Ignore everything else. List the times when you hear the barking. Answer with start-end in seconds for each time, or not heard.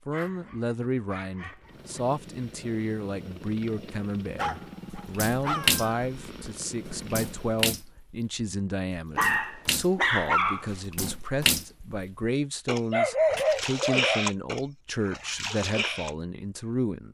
0.1-2.0, 4.3-5.8, 9.2-10.8, 12.9-14.3.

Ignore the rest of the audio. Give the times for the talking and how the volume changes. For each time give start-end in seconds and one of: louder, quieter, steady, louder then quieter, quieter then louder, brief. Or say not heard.
0.1-17.1 steady.